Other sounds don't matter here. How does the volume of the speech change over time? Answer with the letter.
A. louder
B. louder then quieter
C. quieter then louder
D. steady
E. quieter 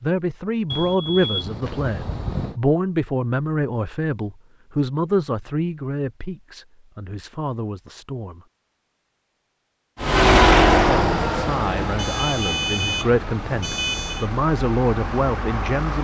C.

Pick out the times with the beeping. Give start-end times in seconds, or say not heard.
0.7-2.6, 11.9-14.3.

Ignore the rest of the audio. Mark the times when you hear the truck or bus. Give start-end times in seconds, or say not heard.
9.9-15.9.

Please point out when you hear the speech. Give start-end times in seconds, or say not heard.
0.0-8.4, 10.8-15.9.